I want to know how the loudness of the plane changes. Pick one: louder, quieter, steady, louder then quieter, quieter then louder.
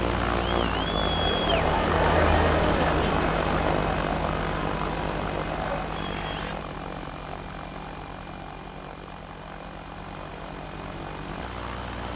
quieter.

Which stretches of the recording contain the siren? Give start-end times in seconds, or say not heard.
not heard.